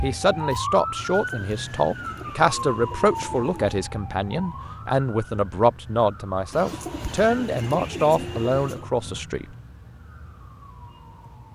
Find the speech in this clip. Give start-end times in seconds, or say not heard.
0.0-9.4.